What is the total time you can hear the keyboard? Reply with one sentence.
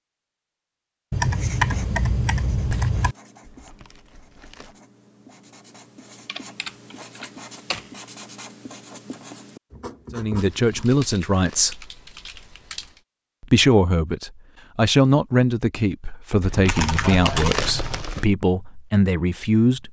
The keyboard can be heard for 8 seconds in total.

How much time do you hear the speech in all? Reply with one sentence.
You can hear the speech for 8 seconds altogether.